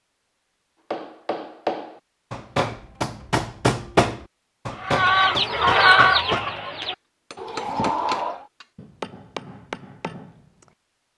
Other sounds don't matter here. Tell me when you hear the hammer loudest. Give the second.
4 s.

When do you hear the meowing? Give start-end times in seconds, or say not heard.
not heard.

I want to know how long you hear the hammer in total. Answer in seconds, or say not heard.
10 s.